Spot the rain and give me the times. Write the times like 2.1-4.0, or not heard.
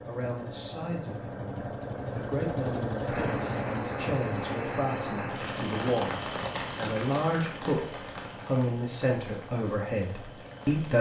3.0-10.9.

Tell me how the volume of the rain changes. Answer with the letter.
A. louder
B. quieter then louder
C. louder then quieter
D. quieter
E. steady
D.